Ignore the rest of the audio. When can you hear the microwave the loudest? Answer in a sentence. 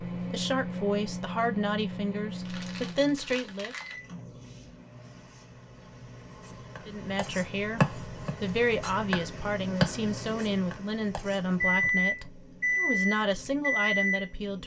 The volume of the microwave peaks at 12 seconds.